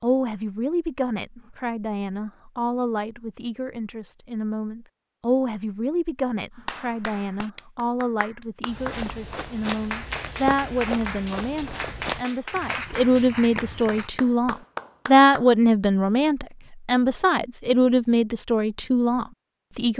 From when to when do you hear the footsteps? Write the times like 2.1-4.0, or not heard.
8.7-14.1.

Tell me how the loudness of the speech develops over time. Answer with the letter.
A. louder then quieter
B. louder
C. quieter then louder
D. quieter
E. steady
B.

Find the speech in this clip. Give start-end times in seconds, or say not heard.
0.0-19.9.